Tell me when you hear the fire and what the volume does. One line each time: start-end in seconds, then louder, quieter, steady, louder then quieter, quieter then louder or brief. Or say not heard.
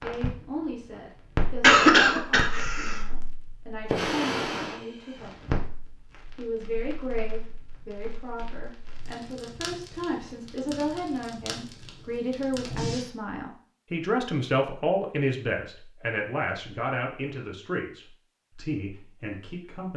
0.0-13.1 quieter.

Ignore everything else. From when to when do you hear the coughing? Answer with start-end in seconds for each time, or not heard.
1.6-3.0.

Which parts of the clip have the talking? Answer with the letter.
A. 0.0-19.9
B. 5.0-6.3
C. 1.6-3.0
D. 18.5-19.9
A.